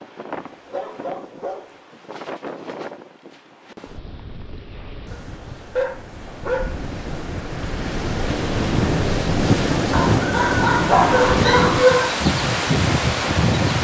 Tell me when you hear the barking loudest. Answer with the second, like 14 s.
12 s.